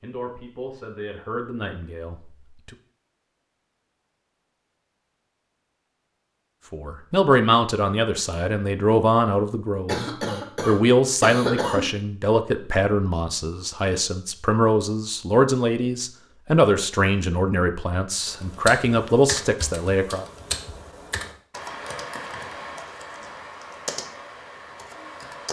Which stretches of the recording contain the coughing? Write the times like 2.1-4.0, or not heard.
9.8-11.8.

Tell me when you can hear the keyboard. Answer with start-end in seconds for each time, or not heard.
18.2-25.4.